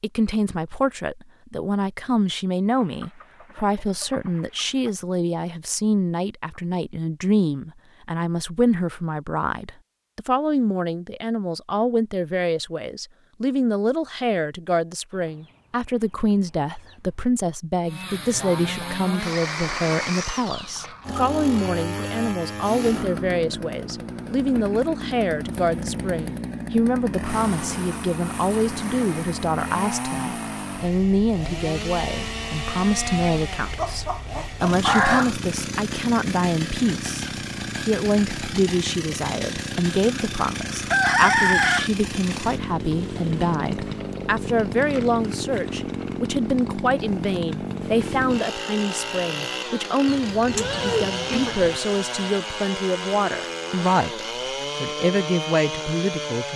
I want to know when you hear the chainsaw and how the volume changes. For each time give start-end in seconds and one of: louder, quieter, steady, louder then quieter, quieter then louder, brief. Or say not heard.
17.9-56.5 steady.